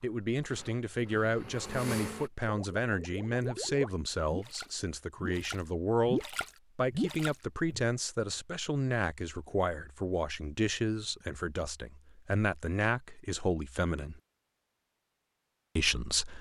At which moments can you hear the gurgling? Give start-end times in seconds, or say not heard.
2.6-7.8.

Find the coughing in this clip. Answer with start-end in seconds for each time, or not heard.
not heard.